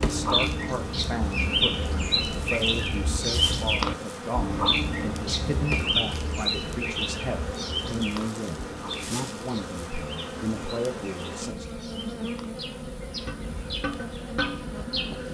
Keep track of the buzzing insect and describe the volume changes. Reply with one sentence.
The volume of the buzzing insect stays about the same.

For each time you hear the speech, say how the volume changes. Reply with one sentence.
The speech can be heard from 0.0 to 11.7 s, at a steady volume.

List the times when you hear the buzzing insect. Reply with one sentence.
You can hear the buzzing insect from 0.0 to 15.2 s.